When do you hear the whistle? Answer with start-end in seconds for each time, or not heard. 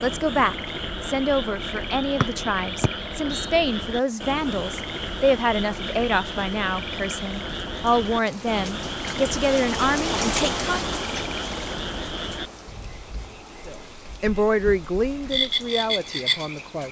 2.2-3.5.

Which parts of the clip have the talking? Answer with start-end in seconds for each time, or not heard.
0.0-10.8, 13.7-16.8.